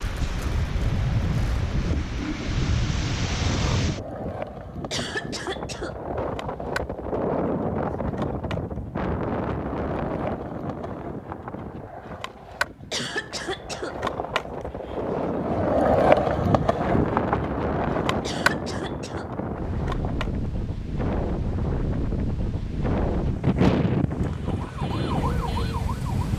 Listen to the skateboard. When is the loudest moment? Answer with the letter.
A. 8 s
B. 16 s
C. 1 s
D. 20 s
B.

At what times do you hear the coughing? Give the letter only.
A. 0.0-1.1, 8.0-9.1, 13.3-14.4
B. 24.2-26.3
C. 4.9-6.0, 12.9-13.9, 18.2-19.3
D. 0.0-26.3
C.